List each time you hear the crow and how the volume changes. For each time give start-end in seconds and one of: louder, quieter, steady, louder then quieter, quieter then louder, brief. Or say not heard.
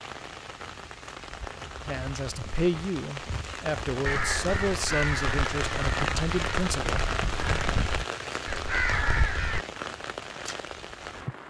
4.0-9.7 quieter then louder.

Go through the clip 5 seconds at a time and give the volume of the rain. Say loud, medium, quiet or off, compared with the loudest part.
medium, loud, medium.